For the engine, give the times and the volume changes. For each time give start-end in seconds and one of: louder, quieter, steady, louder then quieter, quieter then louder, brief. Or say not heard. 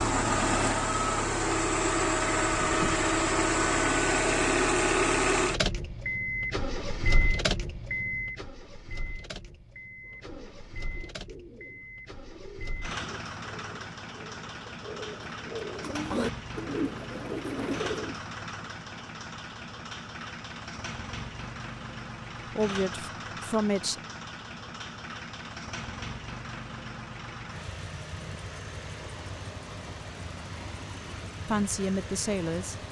0.0-32.8 quieter.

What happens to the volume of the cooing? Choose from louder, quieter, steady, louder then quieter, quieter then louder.
louder.